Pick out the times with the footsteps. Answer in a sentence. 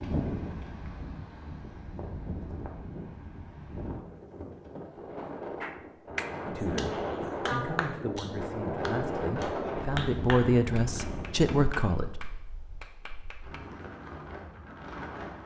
You can't hear the footsteps here.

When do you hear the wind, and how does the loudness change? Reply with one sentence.
You can hear the wind from 0.0 to 15.4 s, getting louder then quieter.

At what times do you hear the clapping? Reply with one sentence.
You can hear the clapping from 5.6 to 13.6 s.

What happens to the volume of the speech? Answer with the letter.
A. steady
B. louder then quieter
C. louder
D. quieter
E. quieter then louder
C.